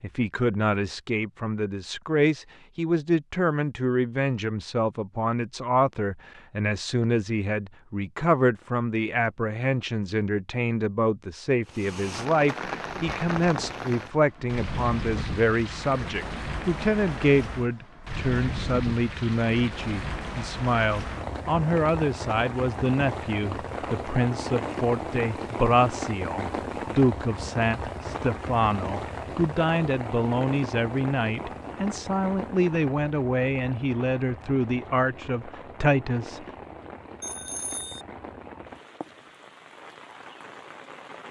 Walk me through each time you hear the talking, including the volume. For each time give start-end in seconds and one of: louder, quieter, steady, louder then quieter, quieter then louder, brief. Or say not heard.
0.0-36.4 steady.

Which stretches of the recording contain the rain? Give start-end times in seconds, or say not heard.
11.7-41.2.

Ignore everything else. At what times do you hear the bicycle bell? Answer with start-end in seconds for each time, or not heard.
37.2-38.0.